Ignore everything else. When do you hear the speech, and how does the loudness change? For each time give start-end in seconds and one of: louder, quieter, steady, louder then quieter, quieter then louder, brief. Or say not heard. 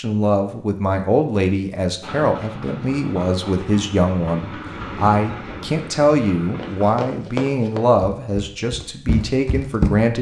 0.0-10.1 steady.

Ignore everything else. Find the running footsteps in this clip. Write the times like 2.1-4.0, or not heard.
6.5-9.9.